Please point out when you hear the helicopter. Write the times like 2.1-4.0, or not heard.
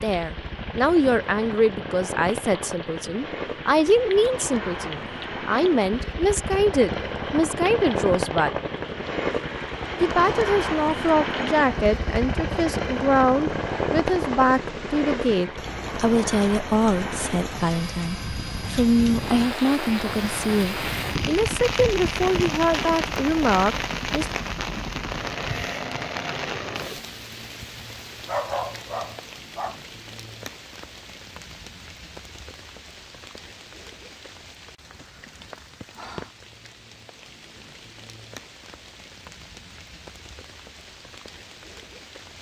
0.0-27.0.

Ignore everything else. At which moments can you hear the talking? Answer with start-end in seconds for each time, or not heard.
0.0-8.6, 10.0-24.2.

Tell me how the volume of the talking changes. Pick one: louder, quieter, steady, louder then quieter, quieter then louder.
steady.